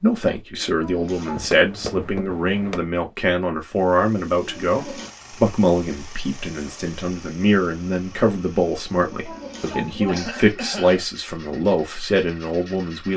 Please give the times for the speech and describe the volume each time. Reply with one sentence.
The speech can be heard from 0.0 to 13.1 s, at a steady volume.